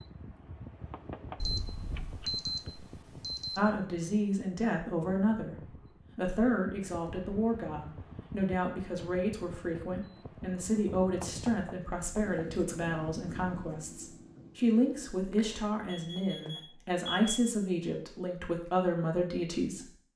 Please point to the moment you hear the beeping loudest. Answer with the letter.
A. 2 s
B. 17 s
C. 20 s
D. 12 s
A.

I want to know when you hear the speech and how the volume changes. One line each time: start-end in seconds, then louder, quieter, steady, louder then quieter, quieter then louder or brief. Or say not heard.
3.5-19.9 steady.